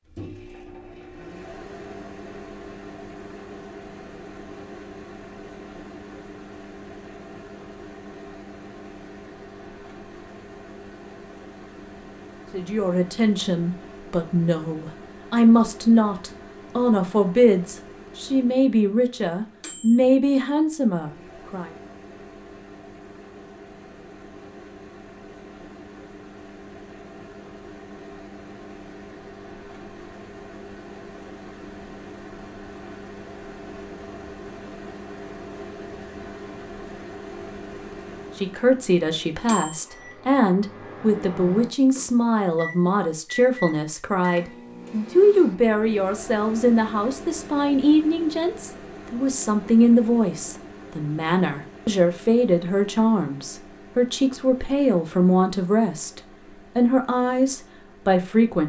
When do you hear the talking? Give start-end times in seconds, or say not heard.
12.5-21.7, 38.4-58.6.